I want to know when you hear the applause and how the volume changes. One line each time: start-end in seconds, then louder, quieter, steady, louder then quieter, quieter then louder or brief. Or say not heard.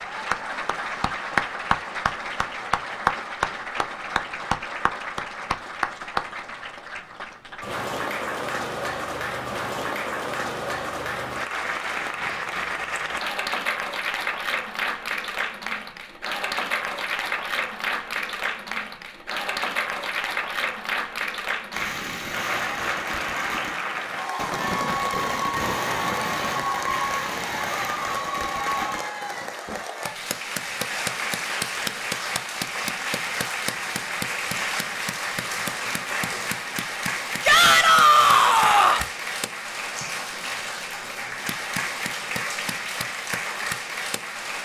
0.0-44.6 steady.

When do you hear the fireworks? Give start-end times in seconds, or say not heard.
21.7-29.8.